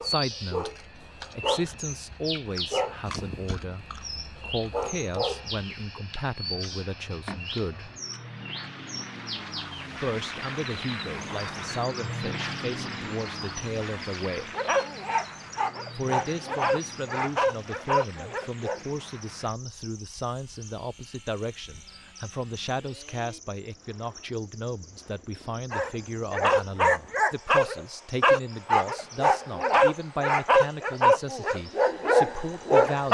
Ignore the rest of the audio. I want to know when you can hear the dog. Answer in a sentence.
You can hear the dog from 0.0 to 6.0 s, from 14.5 to 18.8 s and from 25.7 to 33.0 s.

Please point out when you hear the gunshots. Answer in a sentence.
The gunshots can't be heard in this clip.